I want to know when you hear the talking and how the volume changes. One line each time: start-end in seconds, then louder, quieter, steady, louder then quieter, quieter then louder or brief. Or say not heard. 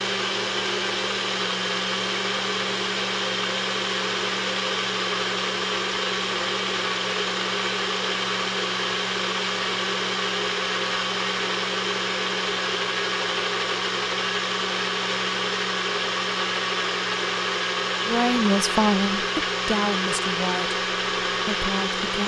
18.1-22.2 quieter.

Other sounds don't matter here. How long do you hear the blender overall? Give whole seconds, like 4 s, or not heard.
22 s.